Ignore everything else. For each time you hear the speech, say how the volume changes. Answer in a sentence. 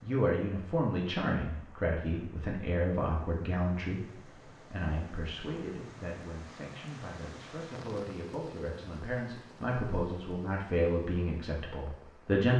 The speech can be heard from 0.0 to 12.5 s, getting quieter then louder.